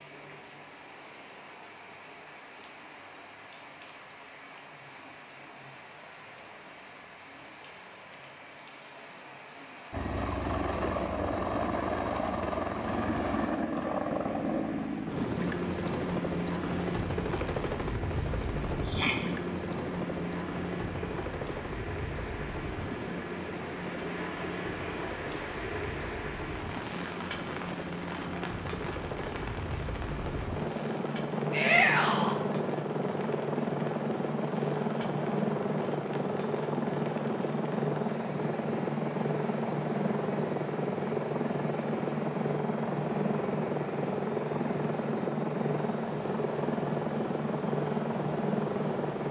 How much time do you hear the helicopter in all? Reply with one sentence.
The helicopter can be heard for 39 seconds in total.